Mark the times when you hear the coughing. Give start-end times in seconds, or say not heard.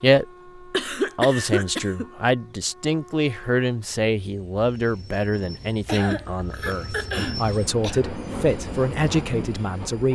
0.7-2.1, 5.8-8.0.